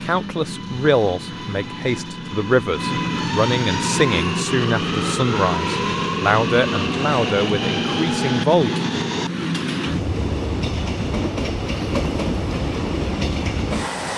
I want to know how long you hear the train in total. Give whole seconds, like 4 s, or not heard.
14 s.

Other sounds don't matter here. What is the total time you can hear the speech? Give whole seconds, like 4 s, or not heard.
9 s.